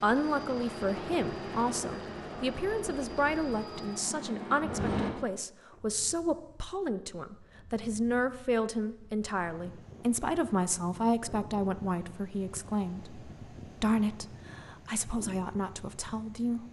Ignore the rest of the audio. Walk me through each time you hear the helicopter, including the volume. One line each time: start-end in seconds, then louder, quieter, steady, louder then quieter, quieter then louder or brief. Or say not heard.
0.0-5.1 steady.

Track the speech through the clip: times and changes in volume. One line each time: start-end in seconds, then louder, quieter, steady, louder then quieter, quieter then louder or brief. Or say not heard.
0.0-16.6 steady.